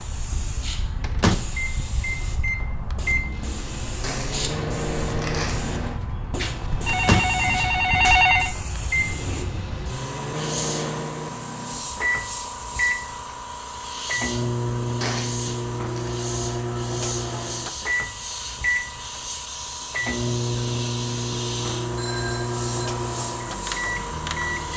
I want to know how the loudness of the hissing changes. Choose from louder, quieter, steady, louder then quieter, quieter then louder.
steady.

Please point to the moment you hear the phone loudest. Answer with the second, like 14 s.
8 s.